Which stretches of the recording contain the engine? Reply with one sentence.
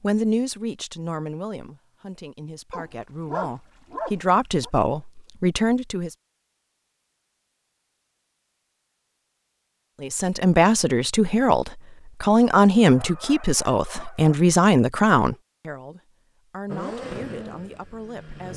You can hear the engine from 16.6 to 18.5 s.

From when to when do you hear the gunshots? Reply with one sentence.
The gunshots can't be heard in this clip.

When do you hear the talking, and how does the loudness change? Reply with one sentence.
You can hear the talking from 0.0 to 6.2 s, getting quieter then louder; and from 10.0 to 18.5 s, getting quieter.